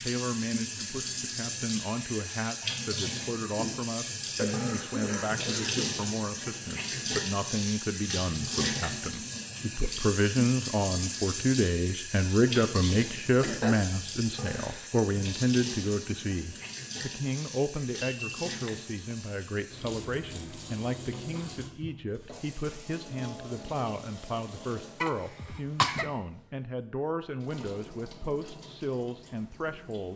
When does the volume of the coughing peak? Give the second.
26 s.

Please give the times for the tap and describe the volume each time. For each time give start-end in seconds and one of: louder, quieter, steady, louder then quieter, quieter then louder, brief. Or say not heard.
0.0-30.1 quieter.